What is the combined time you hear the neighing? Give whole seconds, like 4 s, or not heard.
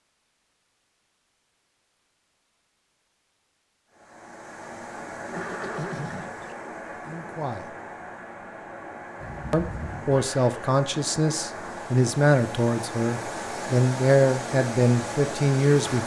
2 s.